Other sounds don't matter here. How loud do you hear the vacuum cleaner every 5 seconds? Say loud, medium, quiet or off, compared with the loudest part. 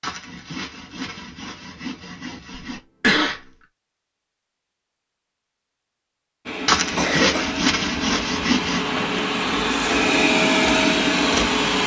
off, medium, loud.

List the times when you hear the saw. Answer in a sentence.
You can hear the saw from 0.0 to 2.8 s and from 6.7 to 8.9 s.